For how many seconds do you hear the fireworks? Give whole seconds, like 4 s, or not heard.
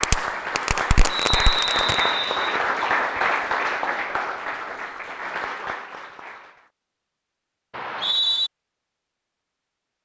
2 s.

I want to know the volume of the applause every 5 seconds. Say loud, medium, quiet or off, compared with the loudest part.
loud, medium.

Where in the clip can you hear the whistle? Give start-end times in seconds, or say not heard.
1.1-2.6, 7.7-8.5.